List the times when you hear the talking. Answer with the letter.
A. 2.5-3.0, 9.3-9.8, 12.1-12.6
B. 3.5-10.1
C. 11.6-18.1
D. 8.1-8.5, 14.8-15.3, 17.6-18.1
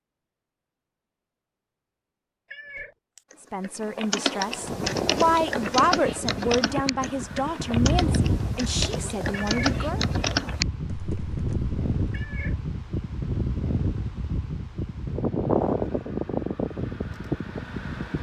B.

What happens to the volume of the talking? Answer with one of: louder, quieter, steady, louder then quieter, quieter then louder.
louder then quieter.